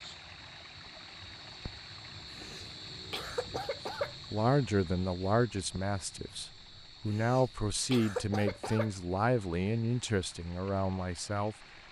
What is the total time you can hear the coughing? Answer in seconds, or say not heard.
4 s.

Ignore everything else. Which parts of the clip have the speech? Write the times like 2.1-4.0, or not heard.
4.3-11.6.